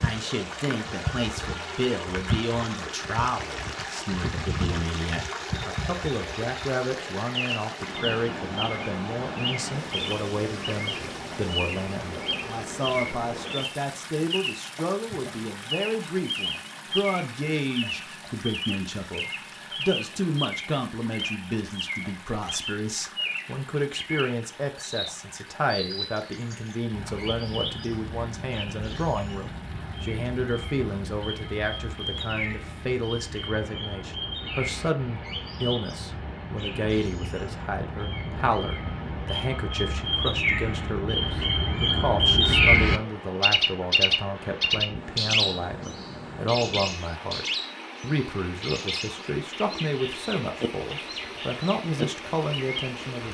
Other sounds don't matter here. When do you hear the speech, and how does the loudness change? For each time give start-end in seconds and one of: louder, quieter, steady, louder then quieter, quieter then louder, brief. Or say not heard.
0.0-53.2 steady.